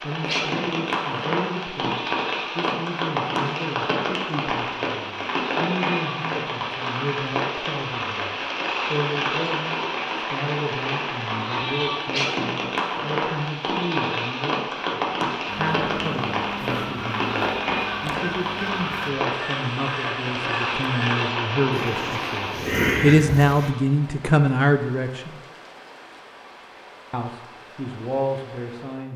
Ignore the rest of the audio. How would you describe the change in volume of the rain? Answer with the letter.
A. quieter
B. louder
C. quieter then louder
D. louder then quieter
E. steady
A.